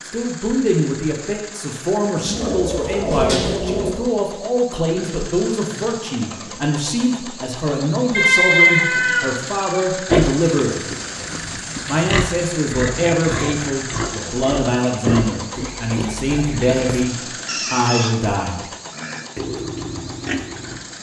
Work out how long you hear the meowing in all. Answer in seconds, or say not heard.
4 s.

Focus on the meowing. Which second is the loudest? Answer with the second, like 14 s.
9 s.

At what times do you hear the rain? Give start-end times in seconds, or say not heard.
not heard.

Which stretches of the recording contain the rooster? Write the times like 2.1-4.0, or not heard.
not heard.